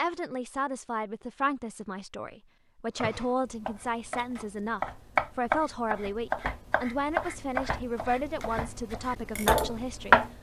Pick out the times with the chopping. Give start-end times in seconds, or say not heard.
3.0-10.3.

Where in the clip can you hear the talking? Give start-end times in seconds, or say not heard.
0.0-10.2.